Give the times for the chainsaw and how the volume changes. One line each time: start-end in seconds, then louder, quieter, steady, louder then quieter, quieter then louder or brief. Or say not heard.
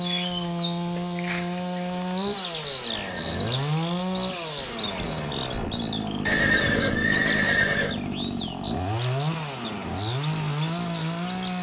0.0-11.5 steady.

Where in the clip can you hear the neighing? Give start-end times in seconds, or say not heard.
2.9-3.5, 6.2-8.0.